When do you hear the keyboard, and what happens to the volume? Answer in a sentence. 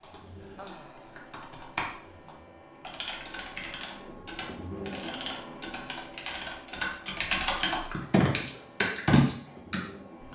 You can hear the keyboard from 0.0 to 10.3 s, getting louder.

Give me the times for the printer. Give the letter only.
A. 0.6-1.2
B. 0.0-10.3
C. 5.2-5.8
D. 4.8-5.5
B.